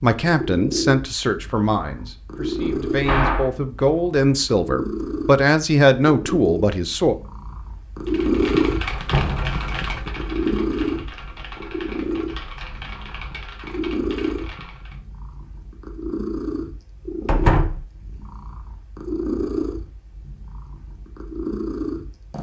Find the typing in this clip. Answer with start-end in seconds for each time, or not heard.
8.1-15.0.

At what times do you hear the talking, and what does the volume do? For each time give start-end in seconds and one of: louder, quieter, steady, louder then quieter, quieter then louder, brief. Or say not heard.
0.0-7.2 quieter then louder.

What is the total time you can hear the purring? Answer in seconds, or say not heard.
22 s.